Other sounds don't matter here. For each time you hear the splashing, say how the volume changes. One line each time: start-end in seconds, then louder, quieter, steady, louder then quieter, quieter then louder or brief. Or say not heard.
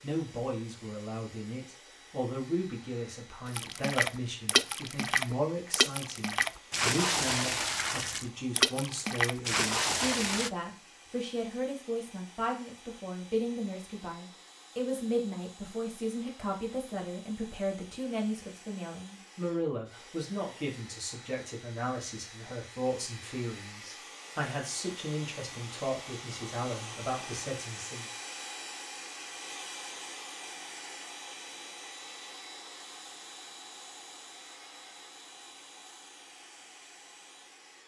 3.5-10.5 steady.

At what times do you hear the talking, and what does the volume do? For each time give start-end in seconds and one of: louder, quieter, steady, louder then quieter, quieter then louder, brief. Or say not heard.
0.0-28.1 steady.